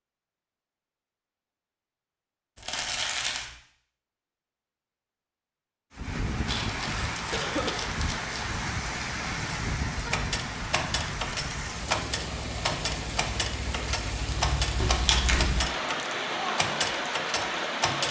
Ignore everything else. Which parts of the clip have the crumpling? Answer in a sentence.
You can hear the crumpling from 2.5 to 3.5 s, from 6.5 to 8.3 s and from 14.8 to 15.5 s.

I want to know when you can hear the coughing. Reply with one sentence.
You can hear the coughing from 7.3 to 7.9 s.